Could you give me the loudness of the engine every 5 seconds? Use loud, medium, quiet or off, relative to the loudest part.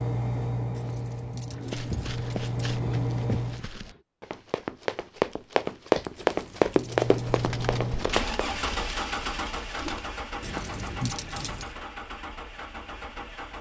loud, loud, medium.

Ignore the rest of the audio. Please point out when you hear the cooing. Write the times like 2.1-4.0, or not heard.
1.5-4.0, 7.2-10.1.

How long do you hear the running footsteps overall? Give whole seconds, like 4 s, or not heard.
7 s.